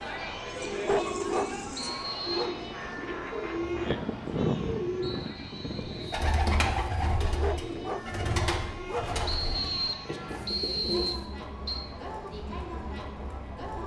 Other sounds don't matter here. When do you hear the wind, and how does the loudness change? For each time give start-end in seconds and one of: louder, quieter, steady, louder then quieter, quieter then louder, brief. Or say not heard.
0.0-13.8 louder then quieter.